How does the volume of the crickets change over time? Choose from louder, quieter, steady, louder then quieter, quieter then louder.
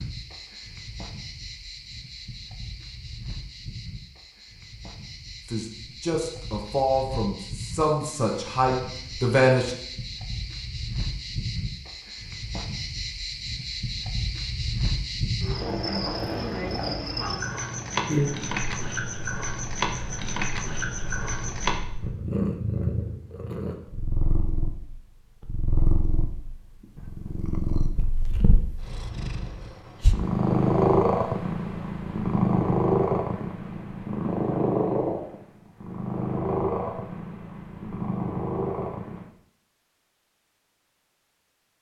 louder.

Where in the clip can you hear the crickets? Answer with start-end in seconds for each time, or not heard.
0.0-21.8.